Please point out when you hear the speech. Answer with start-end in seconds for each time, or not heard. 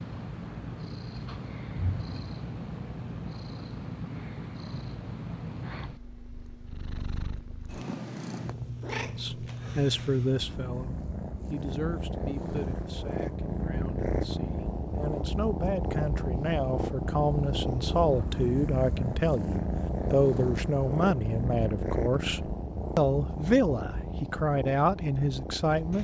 8.9-25.9.